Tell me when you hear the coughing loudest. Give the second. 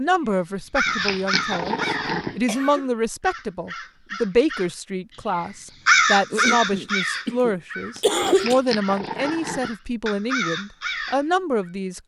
8 s.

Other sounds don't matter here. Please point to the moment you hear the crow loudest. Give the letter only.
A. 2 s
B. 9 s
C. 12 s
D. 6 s
D.